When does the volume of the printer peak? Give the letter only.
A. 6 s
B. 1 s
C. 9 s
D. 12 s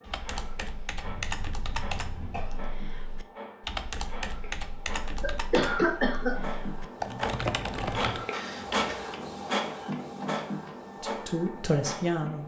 C.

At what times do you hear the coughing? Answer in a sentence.
You can hear the coughing from 1.0 to 2.6 s, from 5.2 to 6.3 s and from 8.3 to 9.1 s.